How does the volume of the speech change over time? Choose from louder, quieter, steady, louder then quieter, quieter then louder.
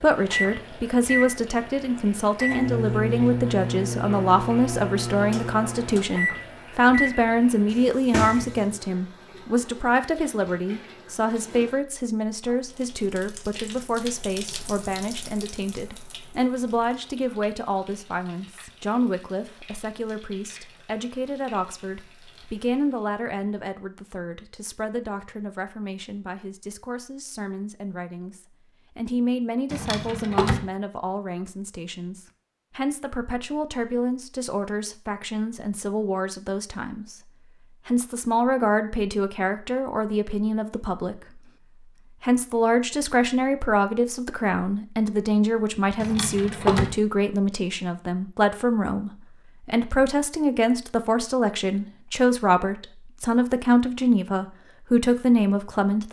quieter then louder.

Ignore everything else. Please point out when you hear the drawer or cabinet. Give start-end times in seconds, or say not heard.
7.7-8.6, 29.7-30.6, 46.0-47.0.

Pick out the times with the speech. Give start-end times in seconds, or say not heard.
0.0-37.2, 37.9-41.4, 42.1-56.0.